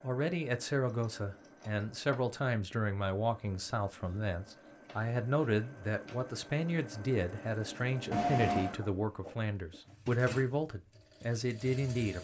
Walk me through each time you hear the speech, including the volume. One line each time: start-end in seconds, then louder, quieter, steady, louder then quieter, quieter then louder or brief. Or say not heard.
0.0-12.1 steady.